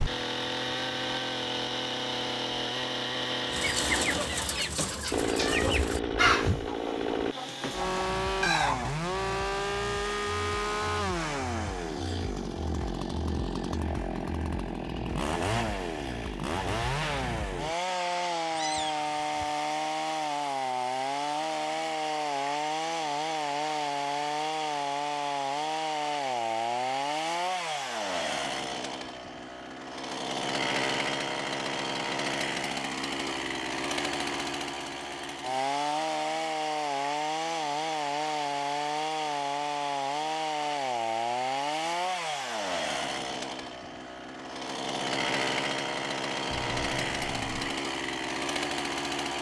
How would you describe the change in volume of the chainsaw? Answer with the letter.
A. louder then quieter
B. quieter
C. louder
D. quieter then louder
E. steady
E.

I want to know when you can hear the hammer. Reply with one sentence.
The hammer can't be heard in this clip.